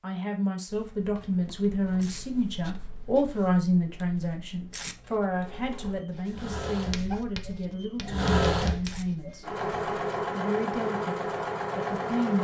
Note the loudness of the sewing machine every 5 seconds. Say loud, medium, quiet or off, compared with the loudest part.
off, loud, loud.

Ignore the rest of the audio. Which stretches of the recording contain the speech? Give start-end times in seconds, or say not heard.
0.0-9.4, 10.3-11.2, 11.8-12.3.